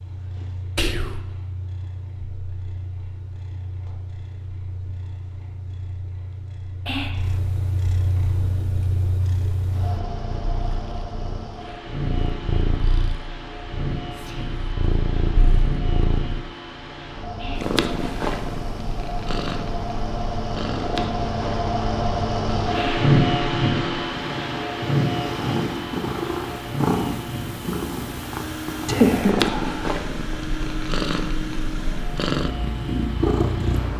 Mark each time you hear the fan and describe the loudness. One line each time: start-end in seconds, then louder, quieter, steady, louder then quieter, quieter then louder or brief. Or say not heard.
8.0-33.9 louder then quieter.